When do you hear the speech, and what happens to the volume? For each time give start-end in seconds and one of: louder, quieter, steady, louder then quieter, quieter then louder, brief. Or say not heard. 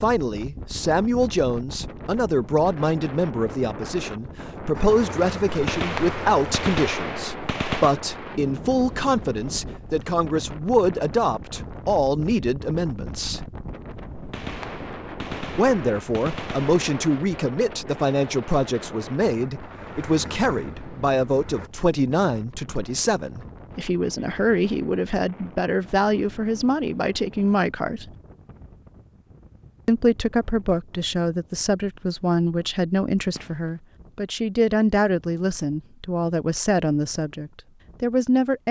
0.0-13.4 steady
15.6-28.1 steady
29.9-38.6 steady.